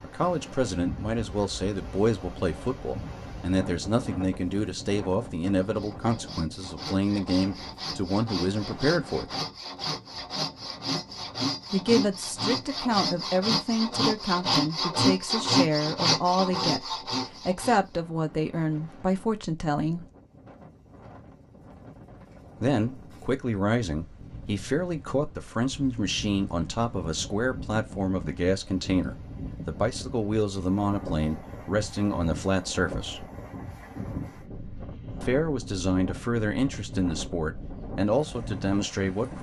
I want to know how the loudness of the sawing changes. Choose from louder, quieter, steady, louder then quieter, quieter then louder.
louder.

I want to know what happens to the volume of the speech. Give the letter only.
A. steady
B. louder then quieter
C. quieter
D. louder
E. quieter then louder
A.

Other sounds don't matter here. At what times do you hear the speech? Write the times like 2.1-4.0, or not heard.
0.0-9.3, 11.7-20.1, 22.6-33.3, 35.2-39.3.